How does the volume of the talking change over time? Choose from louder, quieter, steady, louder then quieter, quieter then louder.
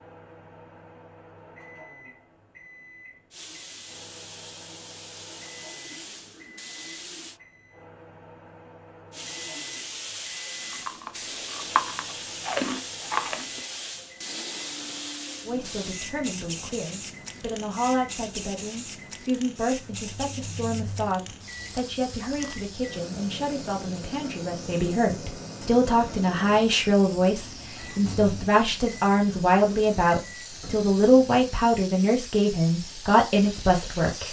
louder.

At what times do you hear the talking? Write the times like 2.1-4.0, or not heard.
15.4-34.2.